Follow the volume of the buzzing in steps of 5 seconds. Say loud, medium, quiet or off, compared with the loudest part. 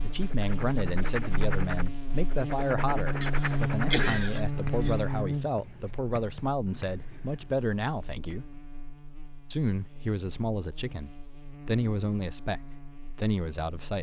loud, medium, quiet.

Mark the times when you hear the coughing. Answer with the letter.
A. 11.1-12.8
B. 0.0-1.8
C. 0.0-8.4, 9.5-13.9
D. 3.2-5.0
D.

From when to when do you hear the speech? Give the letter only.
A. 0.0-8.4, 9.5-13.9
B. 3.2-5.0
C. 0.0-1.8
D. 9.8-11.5
A.